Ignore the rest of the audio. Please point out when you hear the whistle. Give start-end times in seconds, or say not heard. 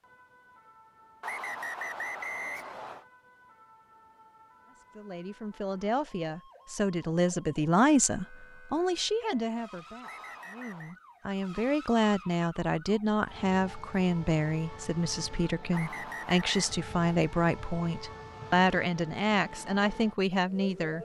1.2-3.0, 10.0-10.9, 15.7-16.8.